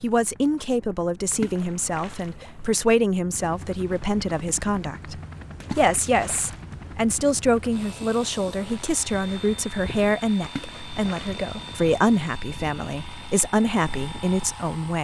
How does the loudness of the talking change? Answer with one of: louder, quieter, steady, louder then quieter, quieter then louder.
steady.